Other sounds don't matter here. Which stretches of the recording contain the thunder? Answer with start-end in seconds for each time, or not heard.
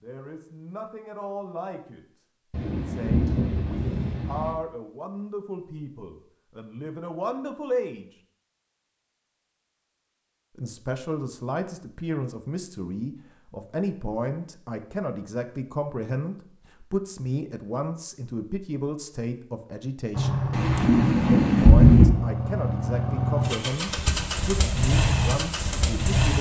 2.5-4.5, 20.5-22.1.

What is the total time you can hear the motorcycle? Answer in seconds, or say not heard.
6 s.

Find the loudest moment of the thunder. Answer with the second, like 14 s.
22 s.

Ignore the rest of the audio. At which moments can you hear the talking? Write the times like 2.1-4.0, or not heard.
0.0-8.2, 10.6-20.4, 21.6-26.3.